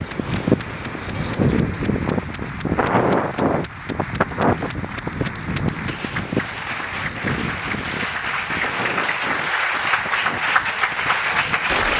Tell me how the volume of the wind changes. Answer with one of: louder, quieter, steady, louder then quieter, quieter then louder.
quieter.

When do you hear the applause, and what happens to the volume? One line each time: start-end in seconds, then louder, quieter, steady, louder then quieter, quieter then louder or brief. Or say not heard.
0.0-11.9 louder.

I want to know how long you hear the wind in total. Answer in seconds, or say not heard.
12 s.